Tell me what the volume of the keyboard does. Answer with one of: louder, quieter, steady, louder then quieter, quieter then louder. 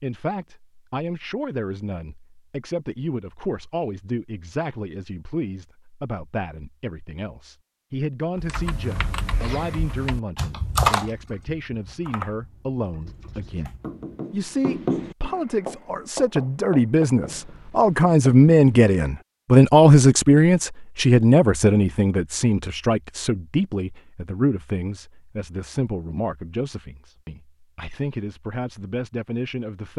louder then quieter.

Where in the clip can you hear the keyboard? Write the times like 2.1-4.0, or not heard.
8.3-14.1.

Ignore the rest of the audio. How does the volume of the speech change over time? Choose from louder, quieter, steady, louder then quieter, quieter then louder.
louder then quieter.